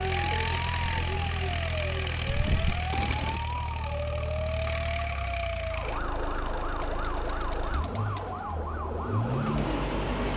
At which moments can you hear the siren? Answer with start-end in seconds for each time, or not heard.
0.0-10.3.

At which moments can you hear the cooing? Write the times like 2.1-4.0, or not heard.
0.0-3.4, 6.3-10.3.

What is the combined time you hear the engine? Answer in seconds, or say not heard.
10 s.